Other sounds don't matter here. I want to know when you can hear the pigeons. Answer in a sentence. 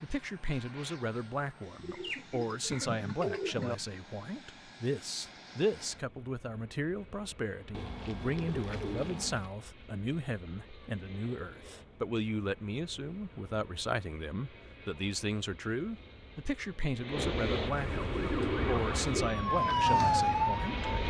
You can hear the pigeons from 1.8 to 3.8 s, from 7.7 to 9.5 s and from 17.6 to 19.4 s.